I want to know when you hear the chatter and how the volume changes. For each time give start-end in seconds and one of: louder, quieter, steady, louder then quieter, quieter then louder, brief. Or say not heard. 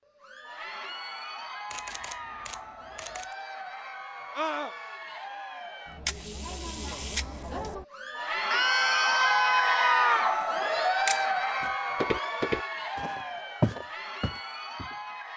0.1-15.3 louder then quieter.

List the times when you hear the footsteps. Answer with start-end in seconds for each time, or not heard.
11.6-15.2.